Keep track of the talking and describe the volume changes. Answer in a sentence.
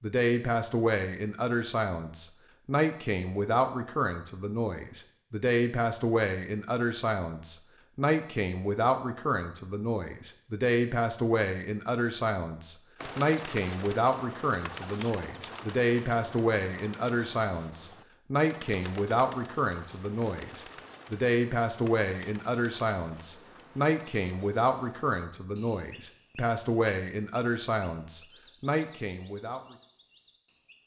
The volume of the talking stays about the same.